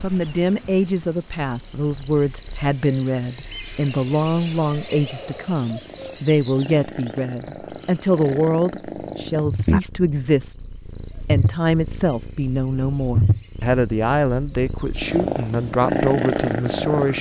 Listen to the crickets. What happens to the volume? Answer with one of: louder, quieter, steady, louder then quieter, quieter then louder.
louder then quieter.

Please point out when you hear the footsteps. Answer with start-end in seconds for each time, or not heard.
not heard.